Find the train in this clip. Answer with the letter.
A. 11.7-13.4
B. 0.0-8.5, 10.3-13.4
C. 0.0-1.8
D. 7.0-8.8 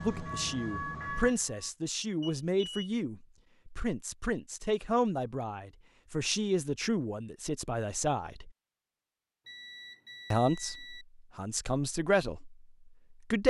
C.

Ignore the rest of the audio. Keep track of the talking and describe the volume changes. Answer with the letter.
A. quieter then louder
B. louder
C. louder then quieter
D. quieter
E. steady
E.